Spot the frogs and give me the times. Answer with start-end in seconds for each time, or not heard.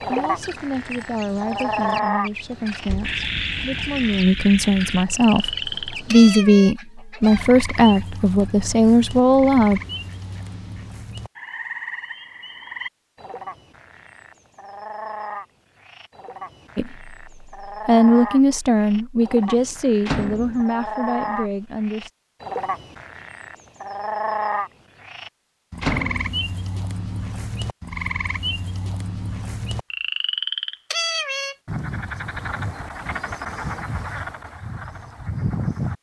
0.0-35.9.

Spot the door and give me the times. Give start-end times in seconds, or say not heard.
2.7-3.1, 20.1-20.6, 25.8-26.4.